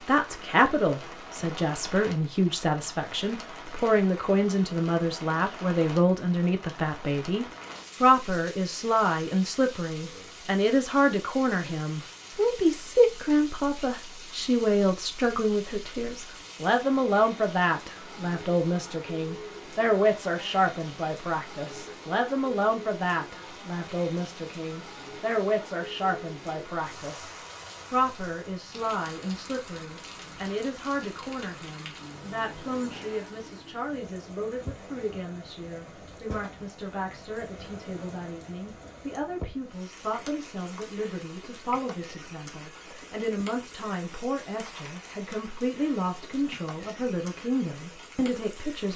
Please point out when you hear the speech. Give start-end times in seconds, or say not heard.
0.1-48.9.